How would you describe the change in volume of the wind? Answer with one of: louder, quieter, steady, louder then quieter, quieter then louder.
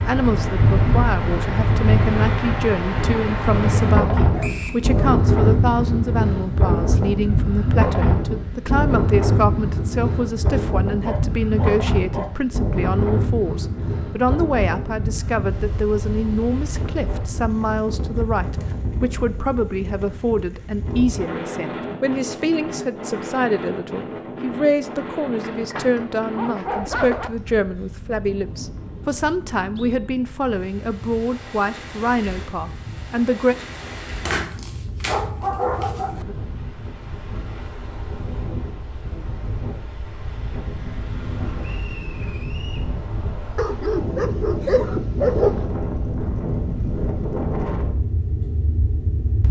quieter then louder.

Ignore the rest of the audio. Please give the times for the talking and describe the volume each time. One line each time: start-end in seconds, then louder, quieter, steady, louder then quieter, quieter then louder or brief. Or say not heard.
0.0-33.5 steady.